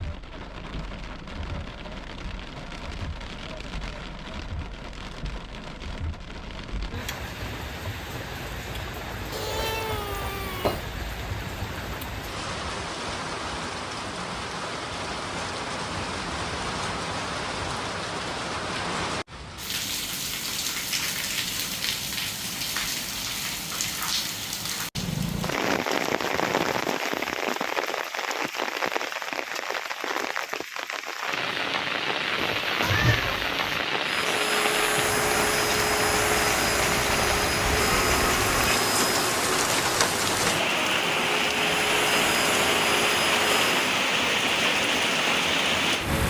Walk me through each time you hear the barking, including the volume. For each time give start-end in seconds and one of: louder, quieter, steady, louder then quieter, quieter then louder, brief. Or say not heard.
not heard.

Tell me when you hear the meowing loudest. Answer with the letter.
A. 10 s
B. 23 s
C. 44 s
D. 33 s
D.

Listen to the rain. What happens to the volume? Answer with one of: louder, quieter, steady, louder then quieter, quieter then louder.
louder.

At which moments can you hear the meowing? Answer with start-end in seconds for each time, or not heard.
9.3-10.8, 32.4-33.9.